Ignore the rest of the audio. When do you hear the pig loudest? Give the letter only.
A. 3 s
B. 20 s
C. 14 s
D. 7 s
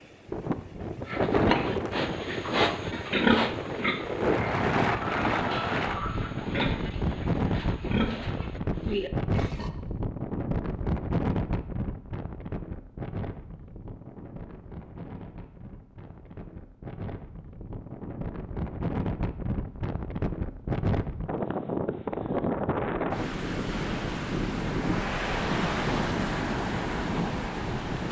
A.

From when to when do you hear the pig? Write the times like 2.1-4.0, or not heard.
1.1-9.7.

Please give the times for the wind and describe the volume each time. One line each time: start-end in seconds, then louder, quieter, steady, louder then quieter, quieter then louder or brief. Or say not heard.
0.0-28.0 quieter then louder.